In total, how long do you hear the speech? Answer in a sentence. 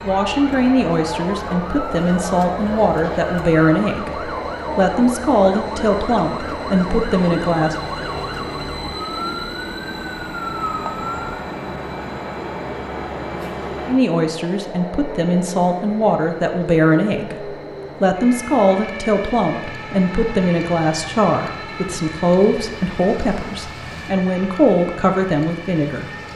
The speech can be heard for 20 seconds in total.